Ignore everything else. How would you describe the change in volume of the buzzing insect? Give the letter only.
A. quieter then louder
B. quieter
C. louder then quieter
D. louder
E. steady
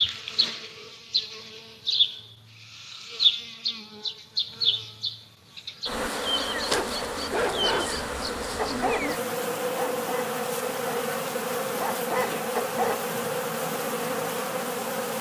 E.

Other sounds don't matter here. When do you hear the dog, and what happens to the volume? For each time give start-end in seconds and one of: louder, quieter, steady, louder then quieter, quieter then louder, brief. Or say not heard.
6.7-13.1 quieter then louder.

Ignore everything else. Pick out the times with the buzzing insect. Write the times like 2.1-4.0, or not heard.
0.0-15.1.